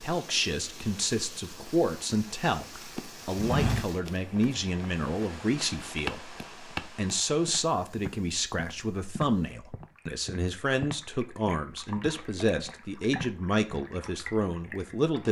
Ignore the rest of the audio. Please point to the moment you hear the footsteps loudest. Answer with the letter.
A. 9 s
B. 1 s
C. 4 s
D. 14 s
C.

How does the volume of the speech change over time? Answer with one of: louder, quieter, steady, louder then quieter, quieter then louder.
steady.